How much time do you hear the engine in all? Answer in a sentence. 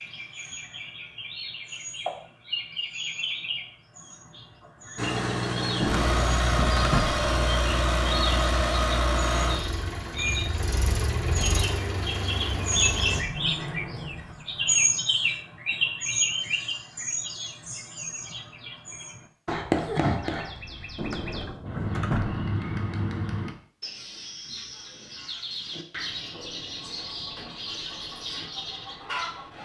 You can hear the engine for 8 seconds altogether.